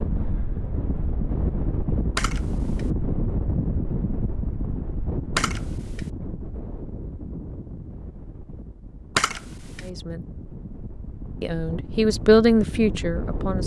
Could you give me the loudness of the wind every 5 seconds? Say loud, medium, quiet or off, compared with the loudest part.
loud, medium, medium.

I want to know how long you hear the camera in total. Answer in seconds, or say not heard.
2 s.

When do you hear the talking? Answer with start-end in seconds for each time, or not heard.
9.8-10.2, 11.4-13.6.